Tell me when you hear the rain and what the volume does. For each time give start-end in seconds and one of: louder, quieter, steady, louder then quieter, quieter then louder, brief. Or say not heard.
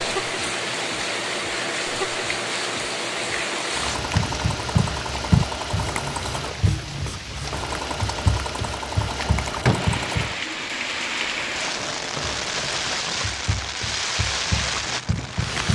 0.0-15.7 quieter then louder.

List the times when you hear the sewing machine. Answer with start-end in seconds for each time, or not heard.
0.0-13.0.